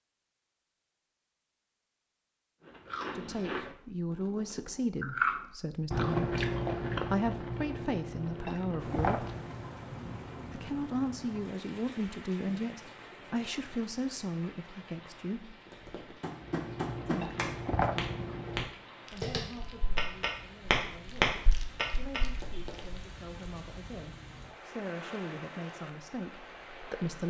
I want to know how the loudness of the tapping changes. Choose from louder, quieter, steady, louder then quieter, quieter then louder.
louder.